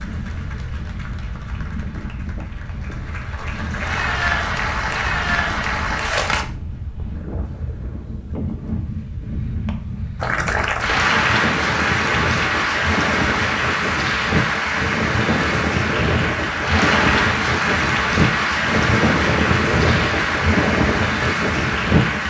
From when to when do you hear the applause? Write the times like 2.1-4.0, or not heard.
0.0-6.5, 10.2-22.2.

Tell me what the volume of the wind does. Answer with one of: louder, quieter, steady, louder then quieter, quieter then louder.
louder.